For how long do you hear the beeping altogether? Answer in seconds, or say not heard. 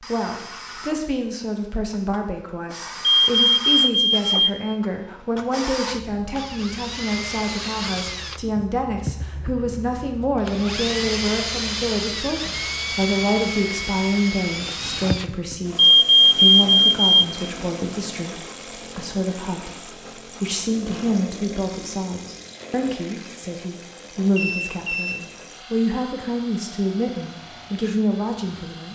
4 s.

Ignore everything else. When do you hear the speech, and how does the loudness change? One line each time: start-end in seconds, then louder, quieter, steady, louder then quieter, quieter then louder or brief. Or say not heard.
0.0-28.9 steady.